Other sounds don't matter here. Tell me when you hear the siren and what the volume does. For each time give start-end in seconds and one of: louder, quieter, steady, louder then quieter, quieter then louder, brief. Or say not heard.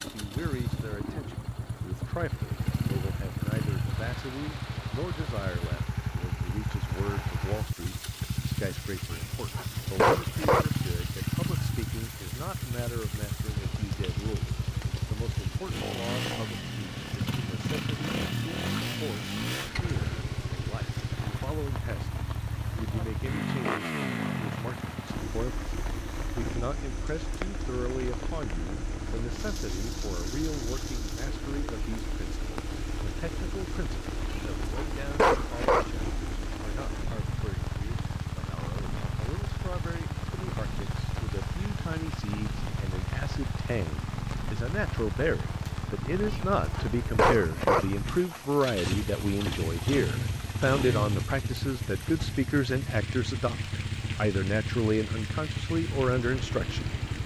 not heard.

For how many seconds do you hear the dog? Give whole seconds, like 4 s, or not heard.
5 s.